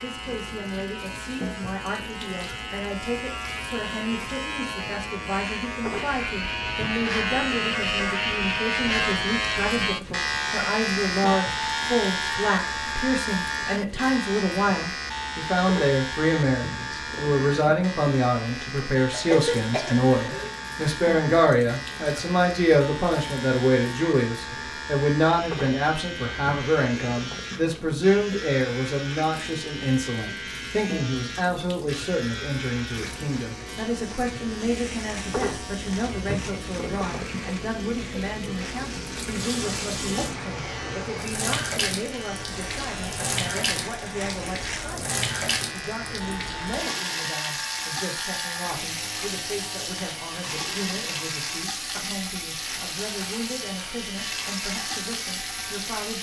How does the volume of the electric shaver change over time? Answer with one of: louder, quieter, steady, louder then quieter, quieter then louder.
quieter.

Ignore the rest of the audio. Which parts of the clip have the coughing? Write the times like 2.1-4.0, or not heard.
19.1-20.6.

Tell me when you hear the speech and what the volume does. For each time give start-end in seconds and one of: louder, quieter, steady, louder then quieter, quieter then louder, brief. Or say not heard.
0.0-56.1 louder then quieter.